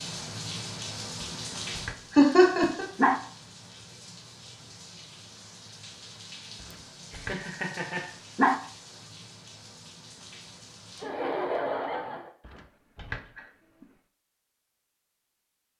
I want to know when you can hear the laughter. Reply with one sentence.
The laughter can be heard from 2.1 to 2.9 s, from 7.1 to 8.1 s and from 11.0 to 12.3 s.